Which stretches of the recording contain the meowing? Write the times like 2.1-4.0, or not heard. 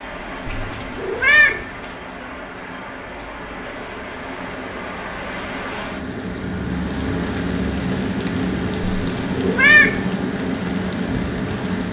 0.5-1.6, 8.9-10.0.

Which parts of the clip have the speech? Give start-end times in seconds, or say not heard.
not heard.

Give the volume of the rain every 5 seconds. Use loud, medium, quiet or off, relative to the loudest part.
medium, loud, loud.